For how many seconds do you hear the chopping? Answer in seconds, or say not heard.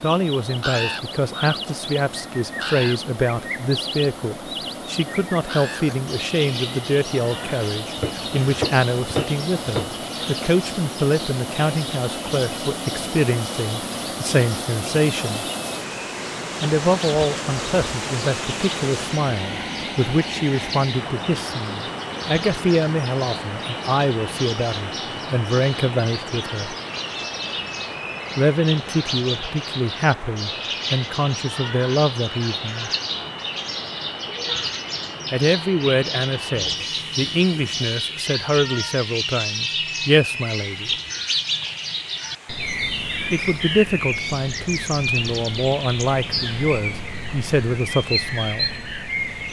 2 s.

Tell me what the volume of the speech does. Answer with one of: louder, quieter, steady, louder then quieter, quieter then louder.
steady.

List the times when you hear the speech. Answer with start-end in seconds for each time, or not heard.
0.0-15.4, 16.6-26.8, 28.4-32.9, 35.3-40.9, 43.3-48.8.